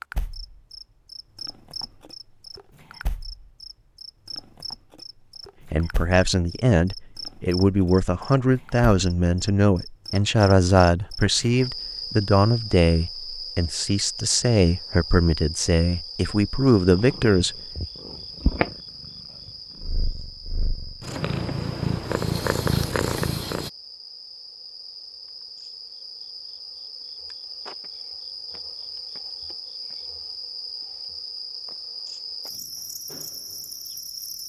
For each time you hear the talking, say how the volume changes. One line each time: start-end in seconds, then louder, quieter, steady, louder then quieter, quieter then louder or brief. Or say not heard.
5.7-17.6 steady.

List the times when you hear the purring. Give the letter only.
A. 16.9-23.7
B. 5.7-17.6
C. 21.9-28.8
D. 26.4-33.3
A.